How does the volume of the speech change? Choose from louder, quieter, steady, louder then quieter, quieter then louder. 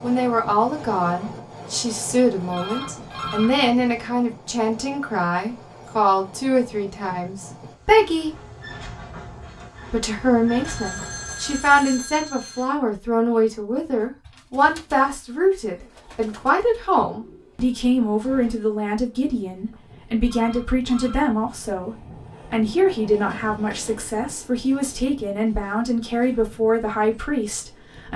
steady.